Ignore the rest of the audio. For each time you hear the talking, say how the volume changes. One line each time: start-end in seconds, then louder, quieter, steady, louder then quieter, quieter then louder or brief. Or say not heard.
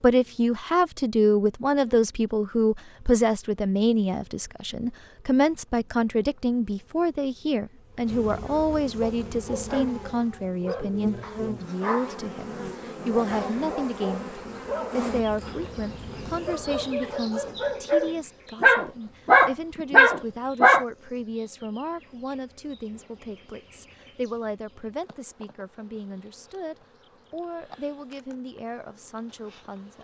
0.0-29.9 quieter.